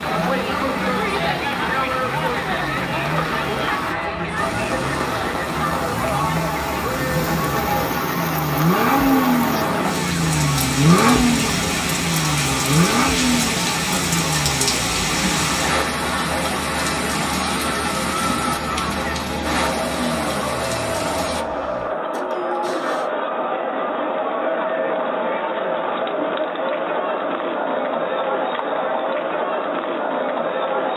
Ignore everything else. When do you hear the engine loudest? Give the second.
11 s.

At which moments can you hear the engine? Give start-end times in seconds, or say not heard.
0.0-23.1.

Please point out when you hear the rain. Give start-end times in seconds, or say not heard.
0.0-21.4.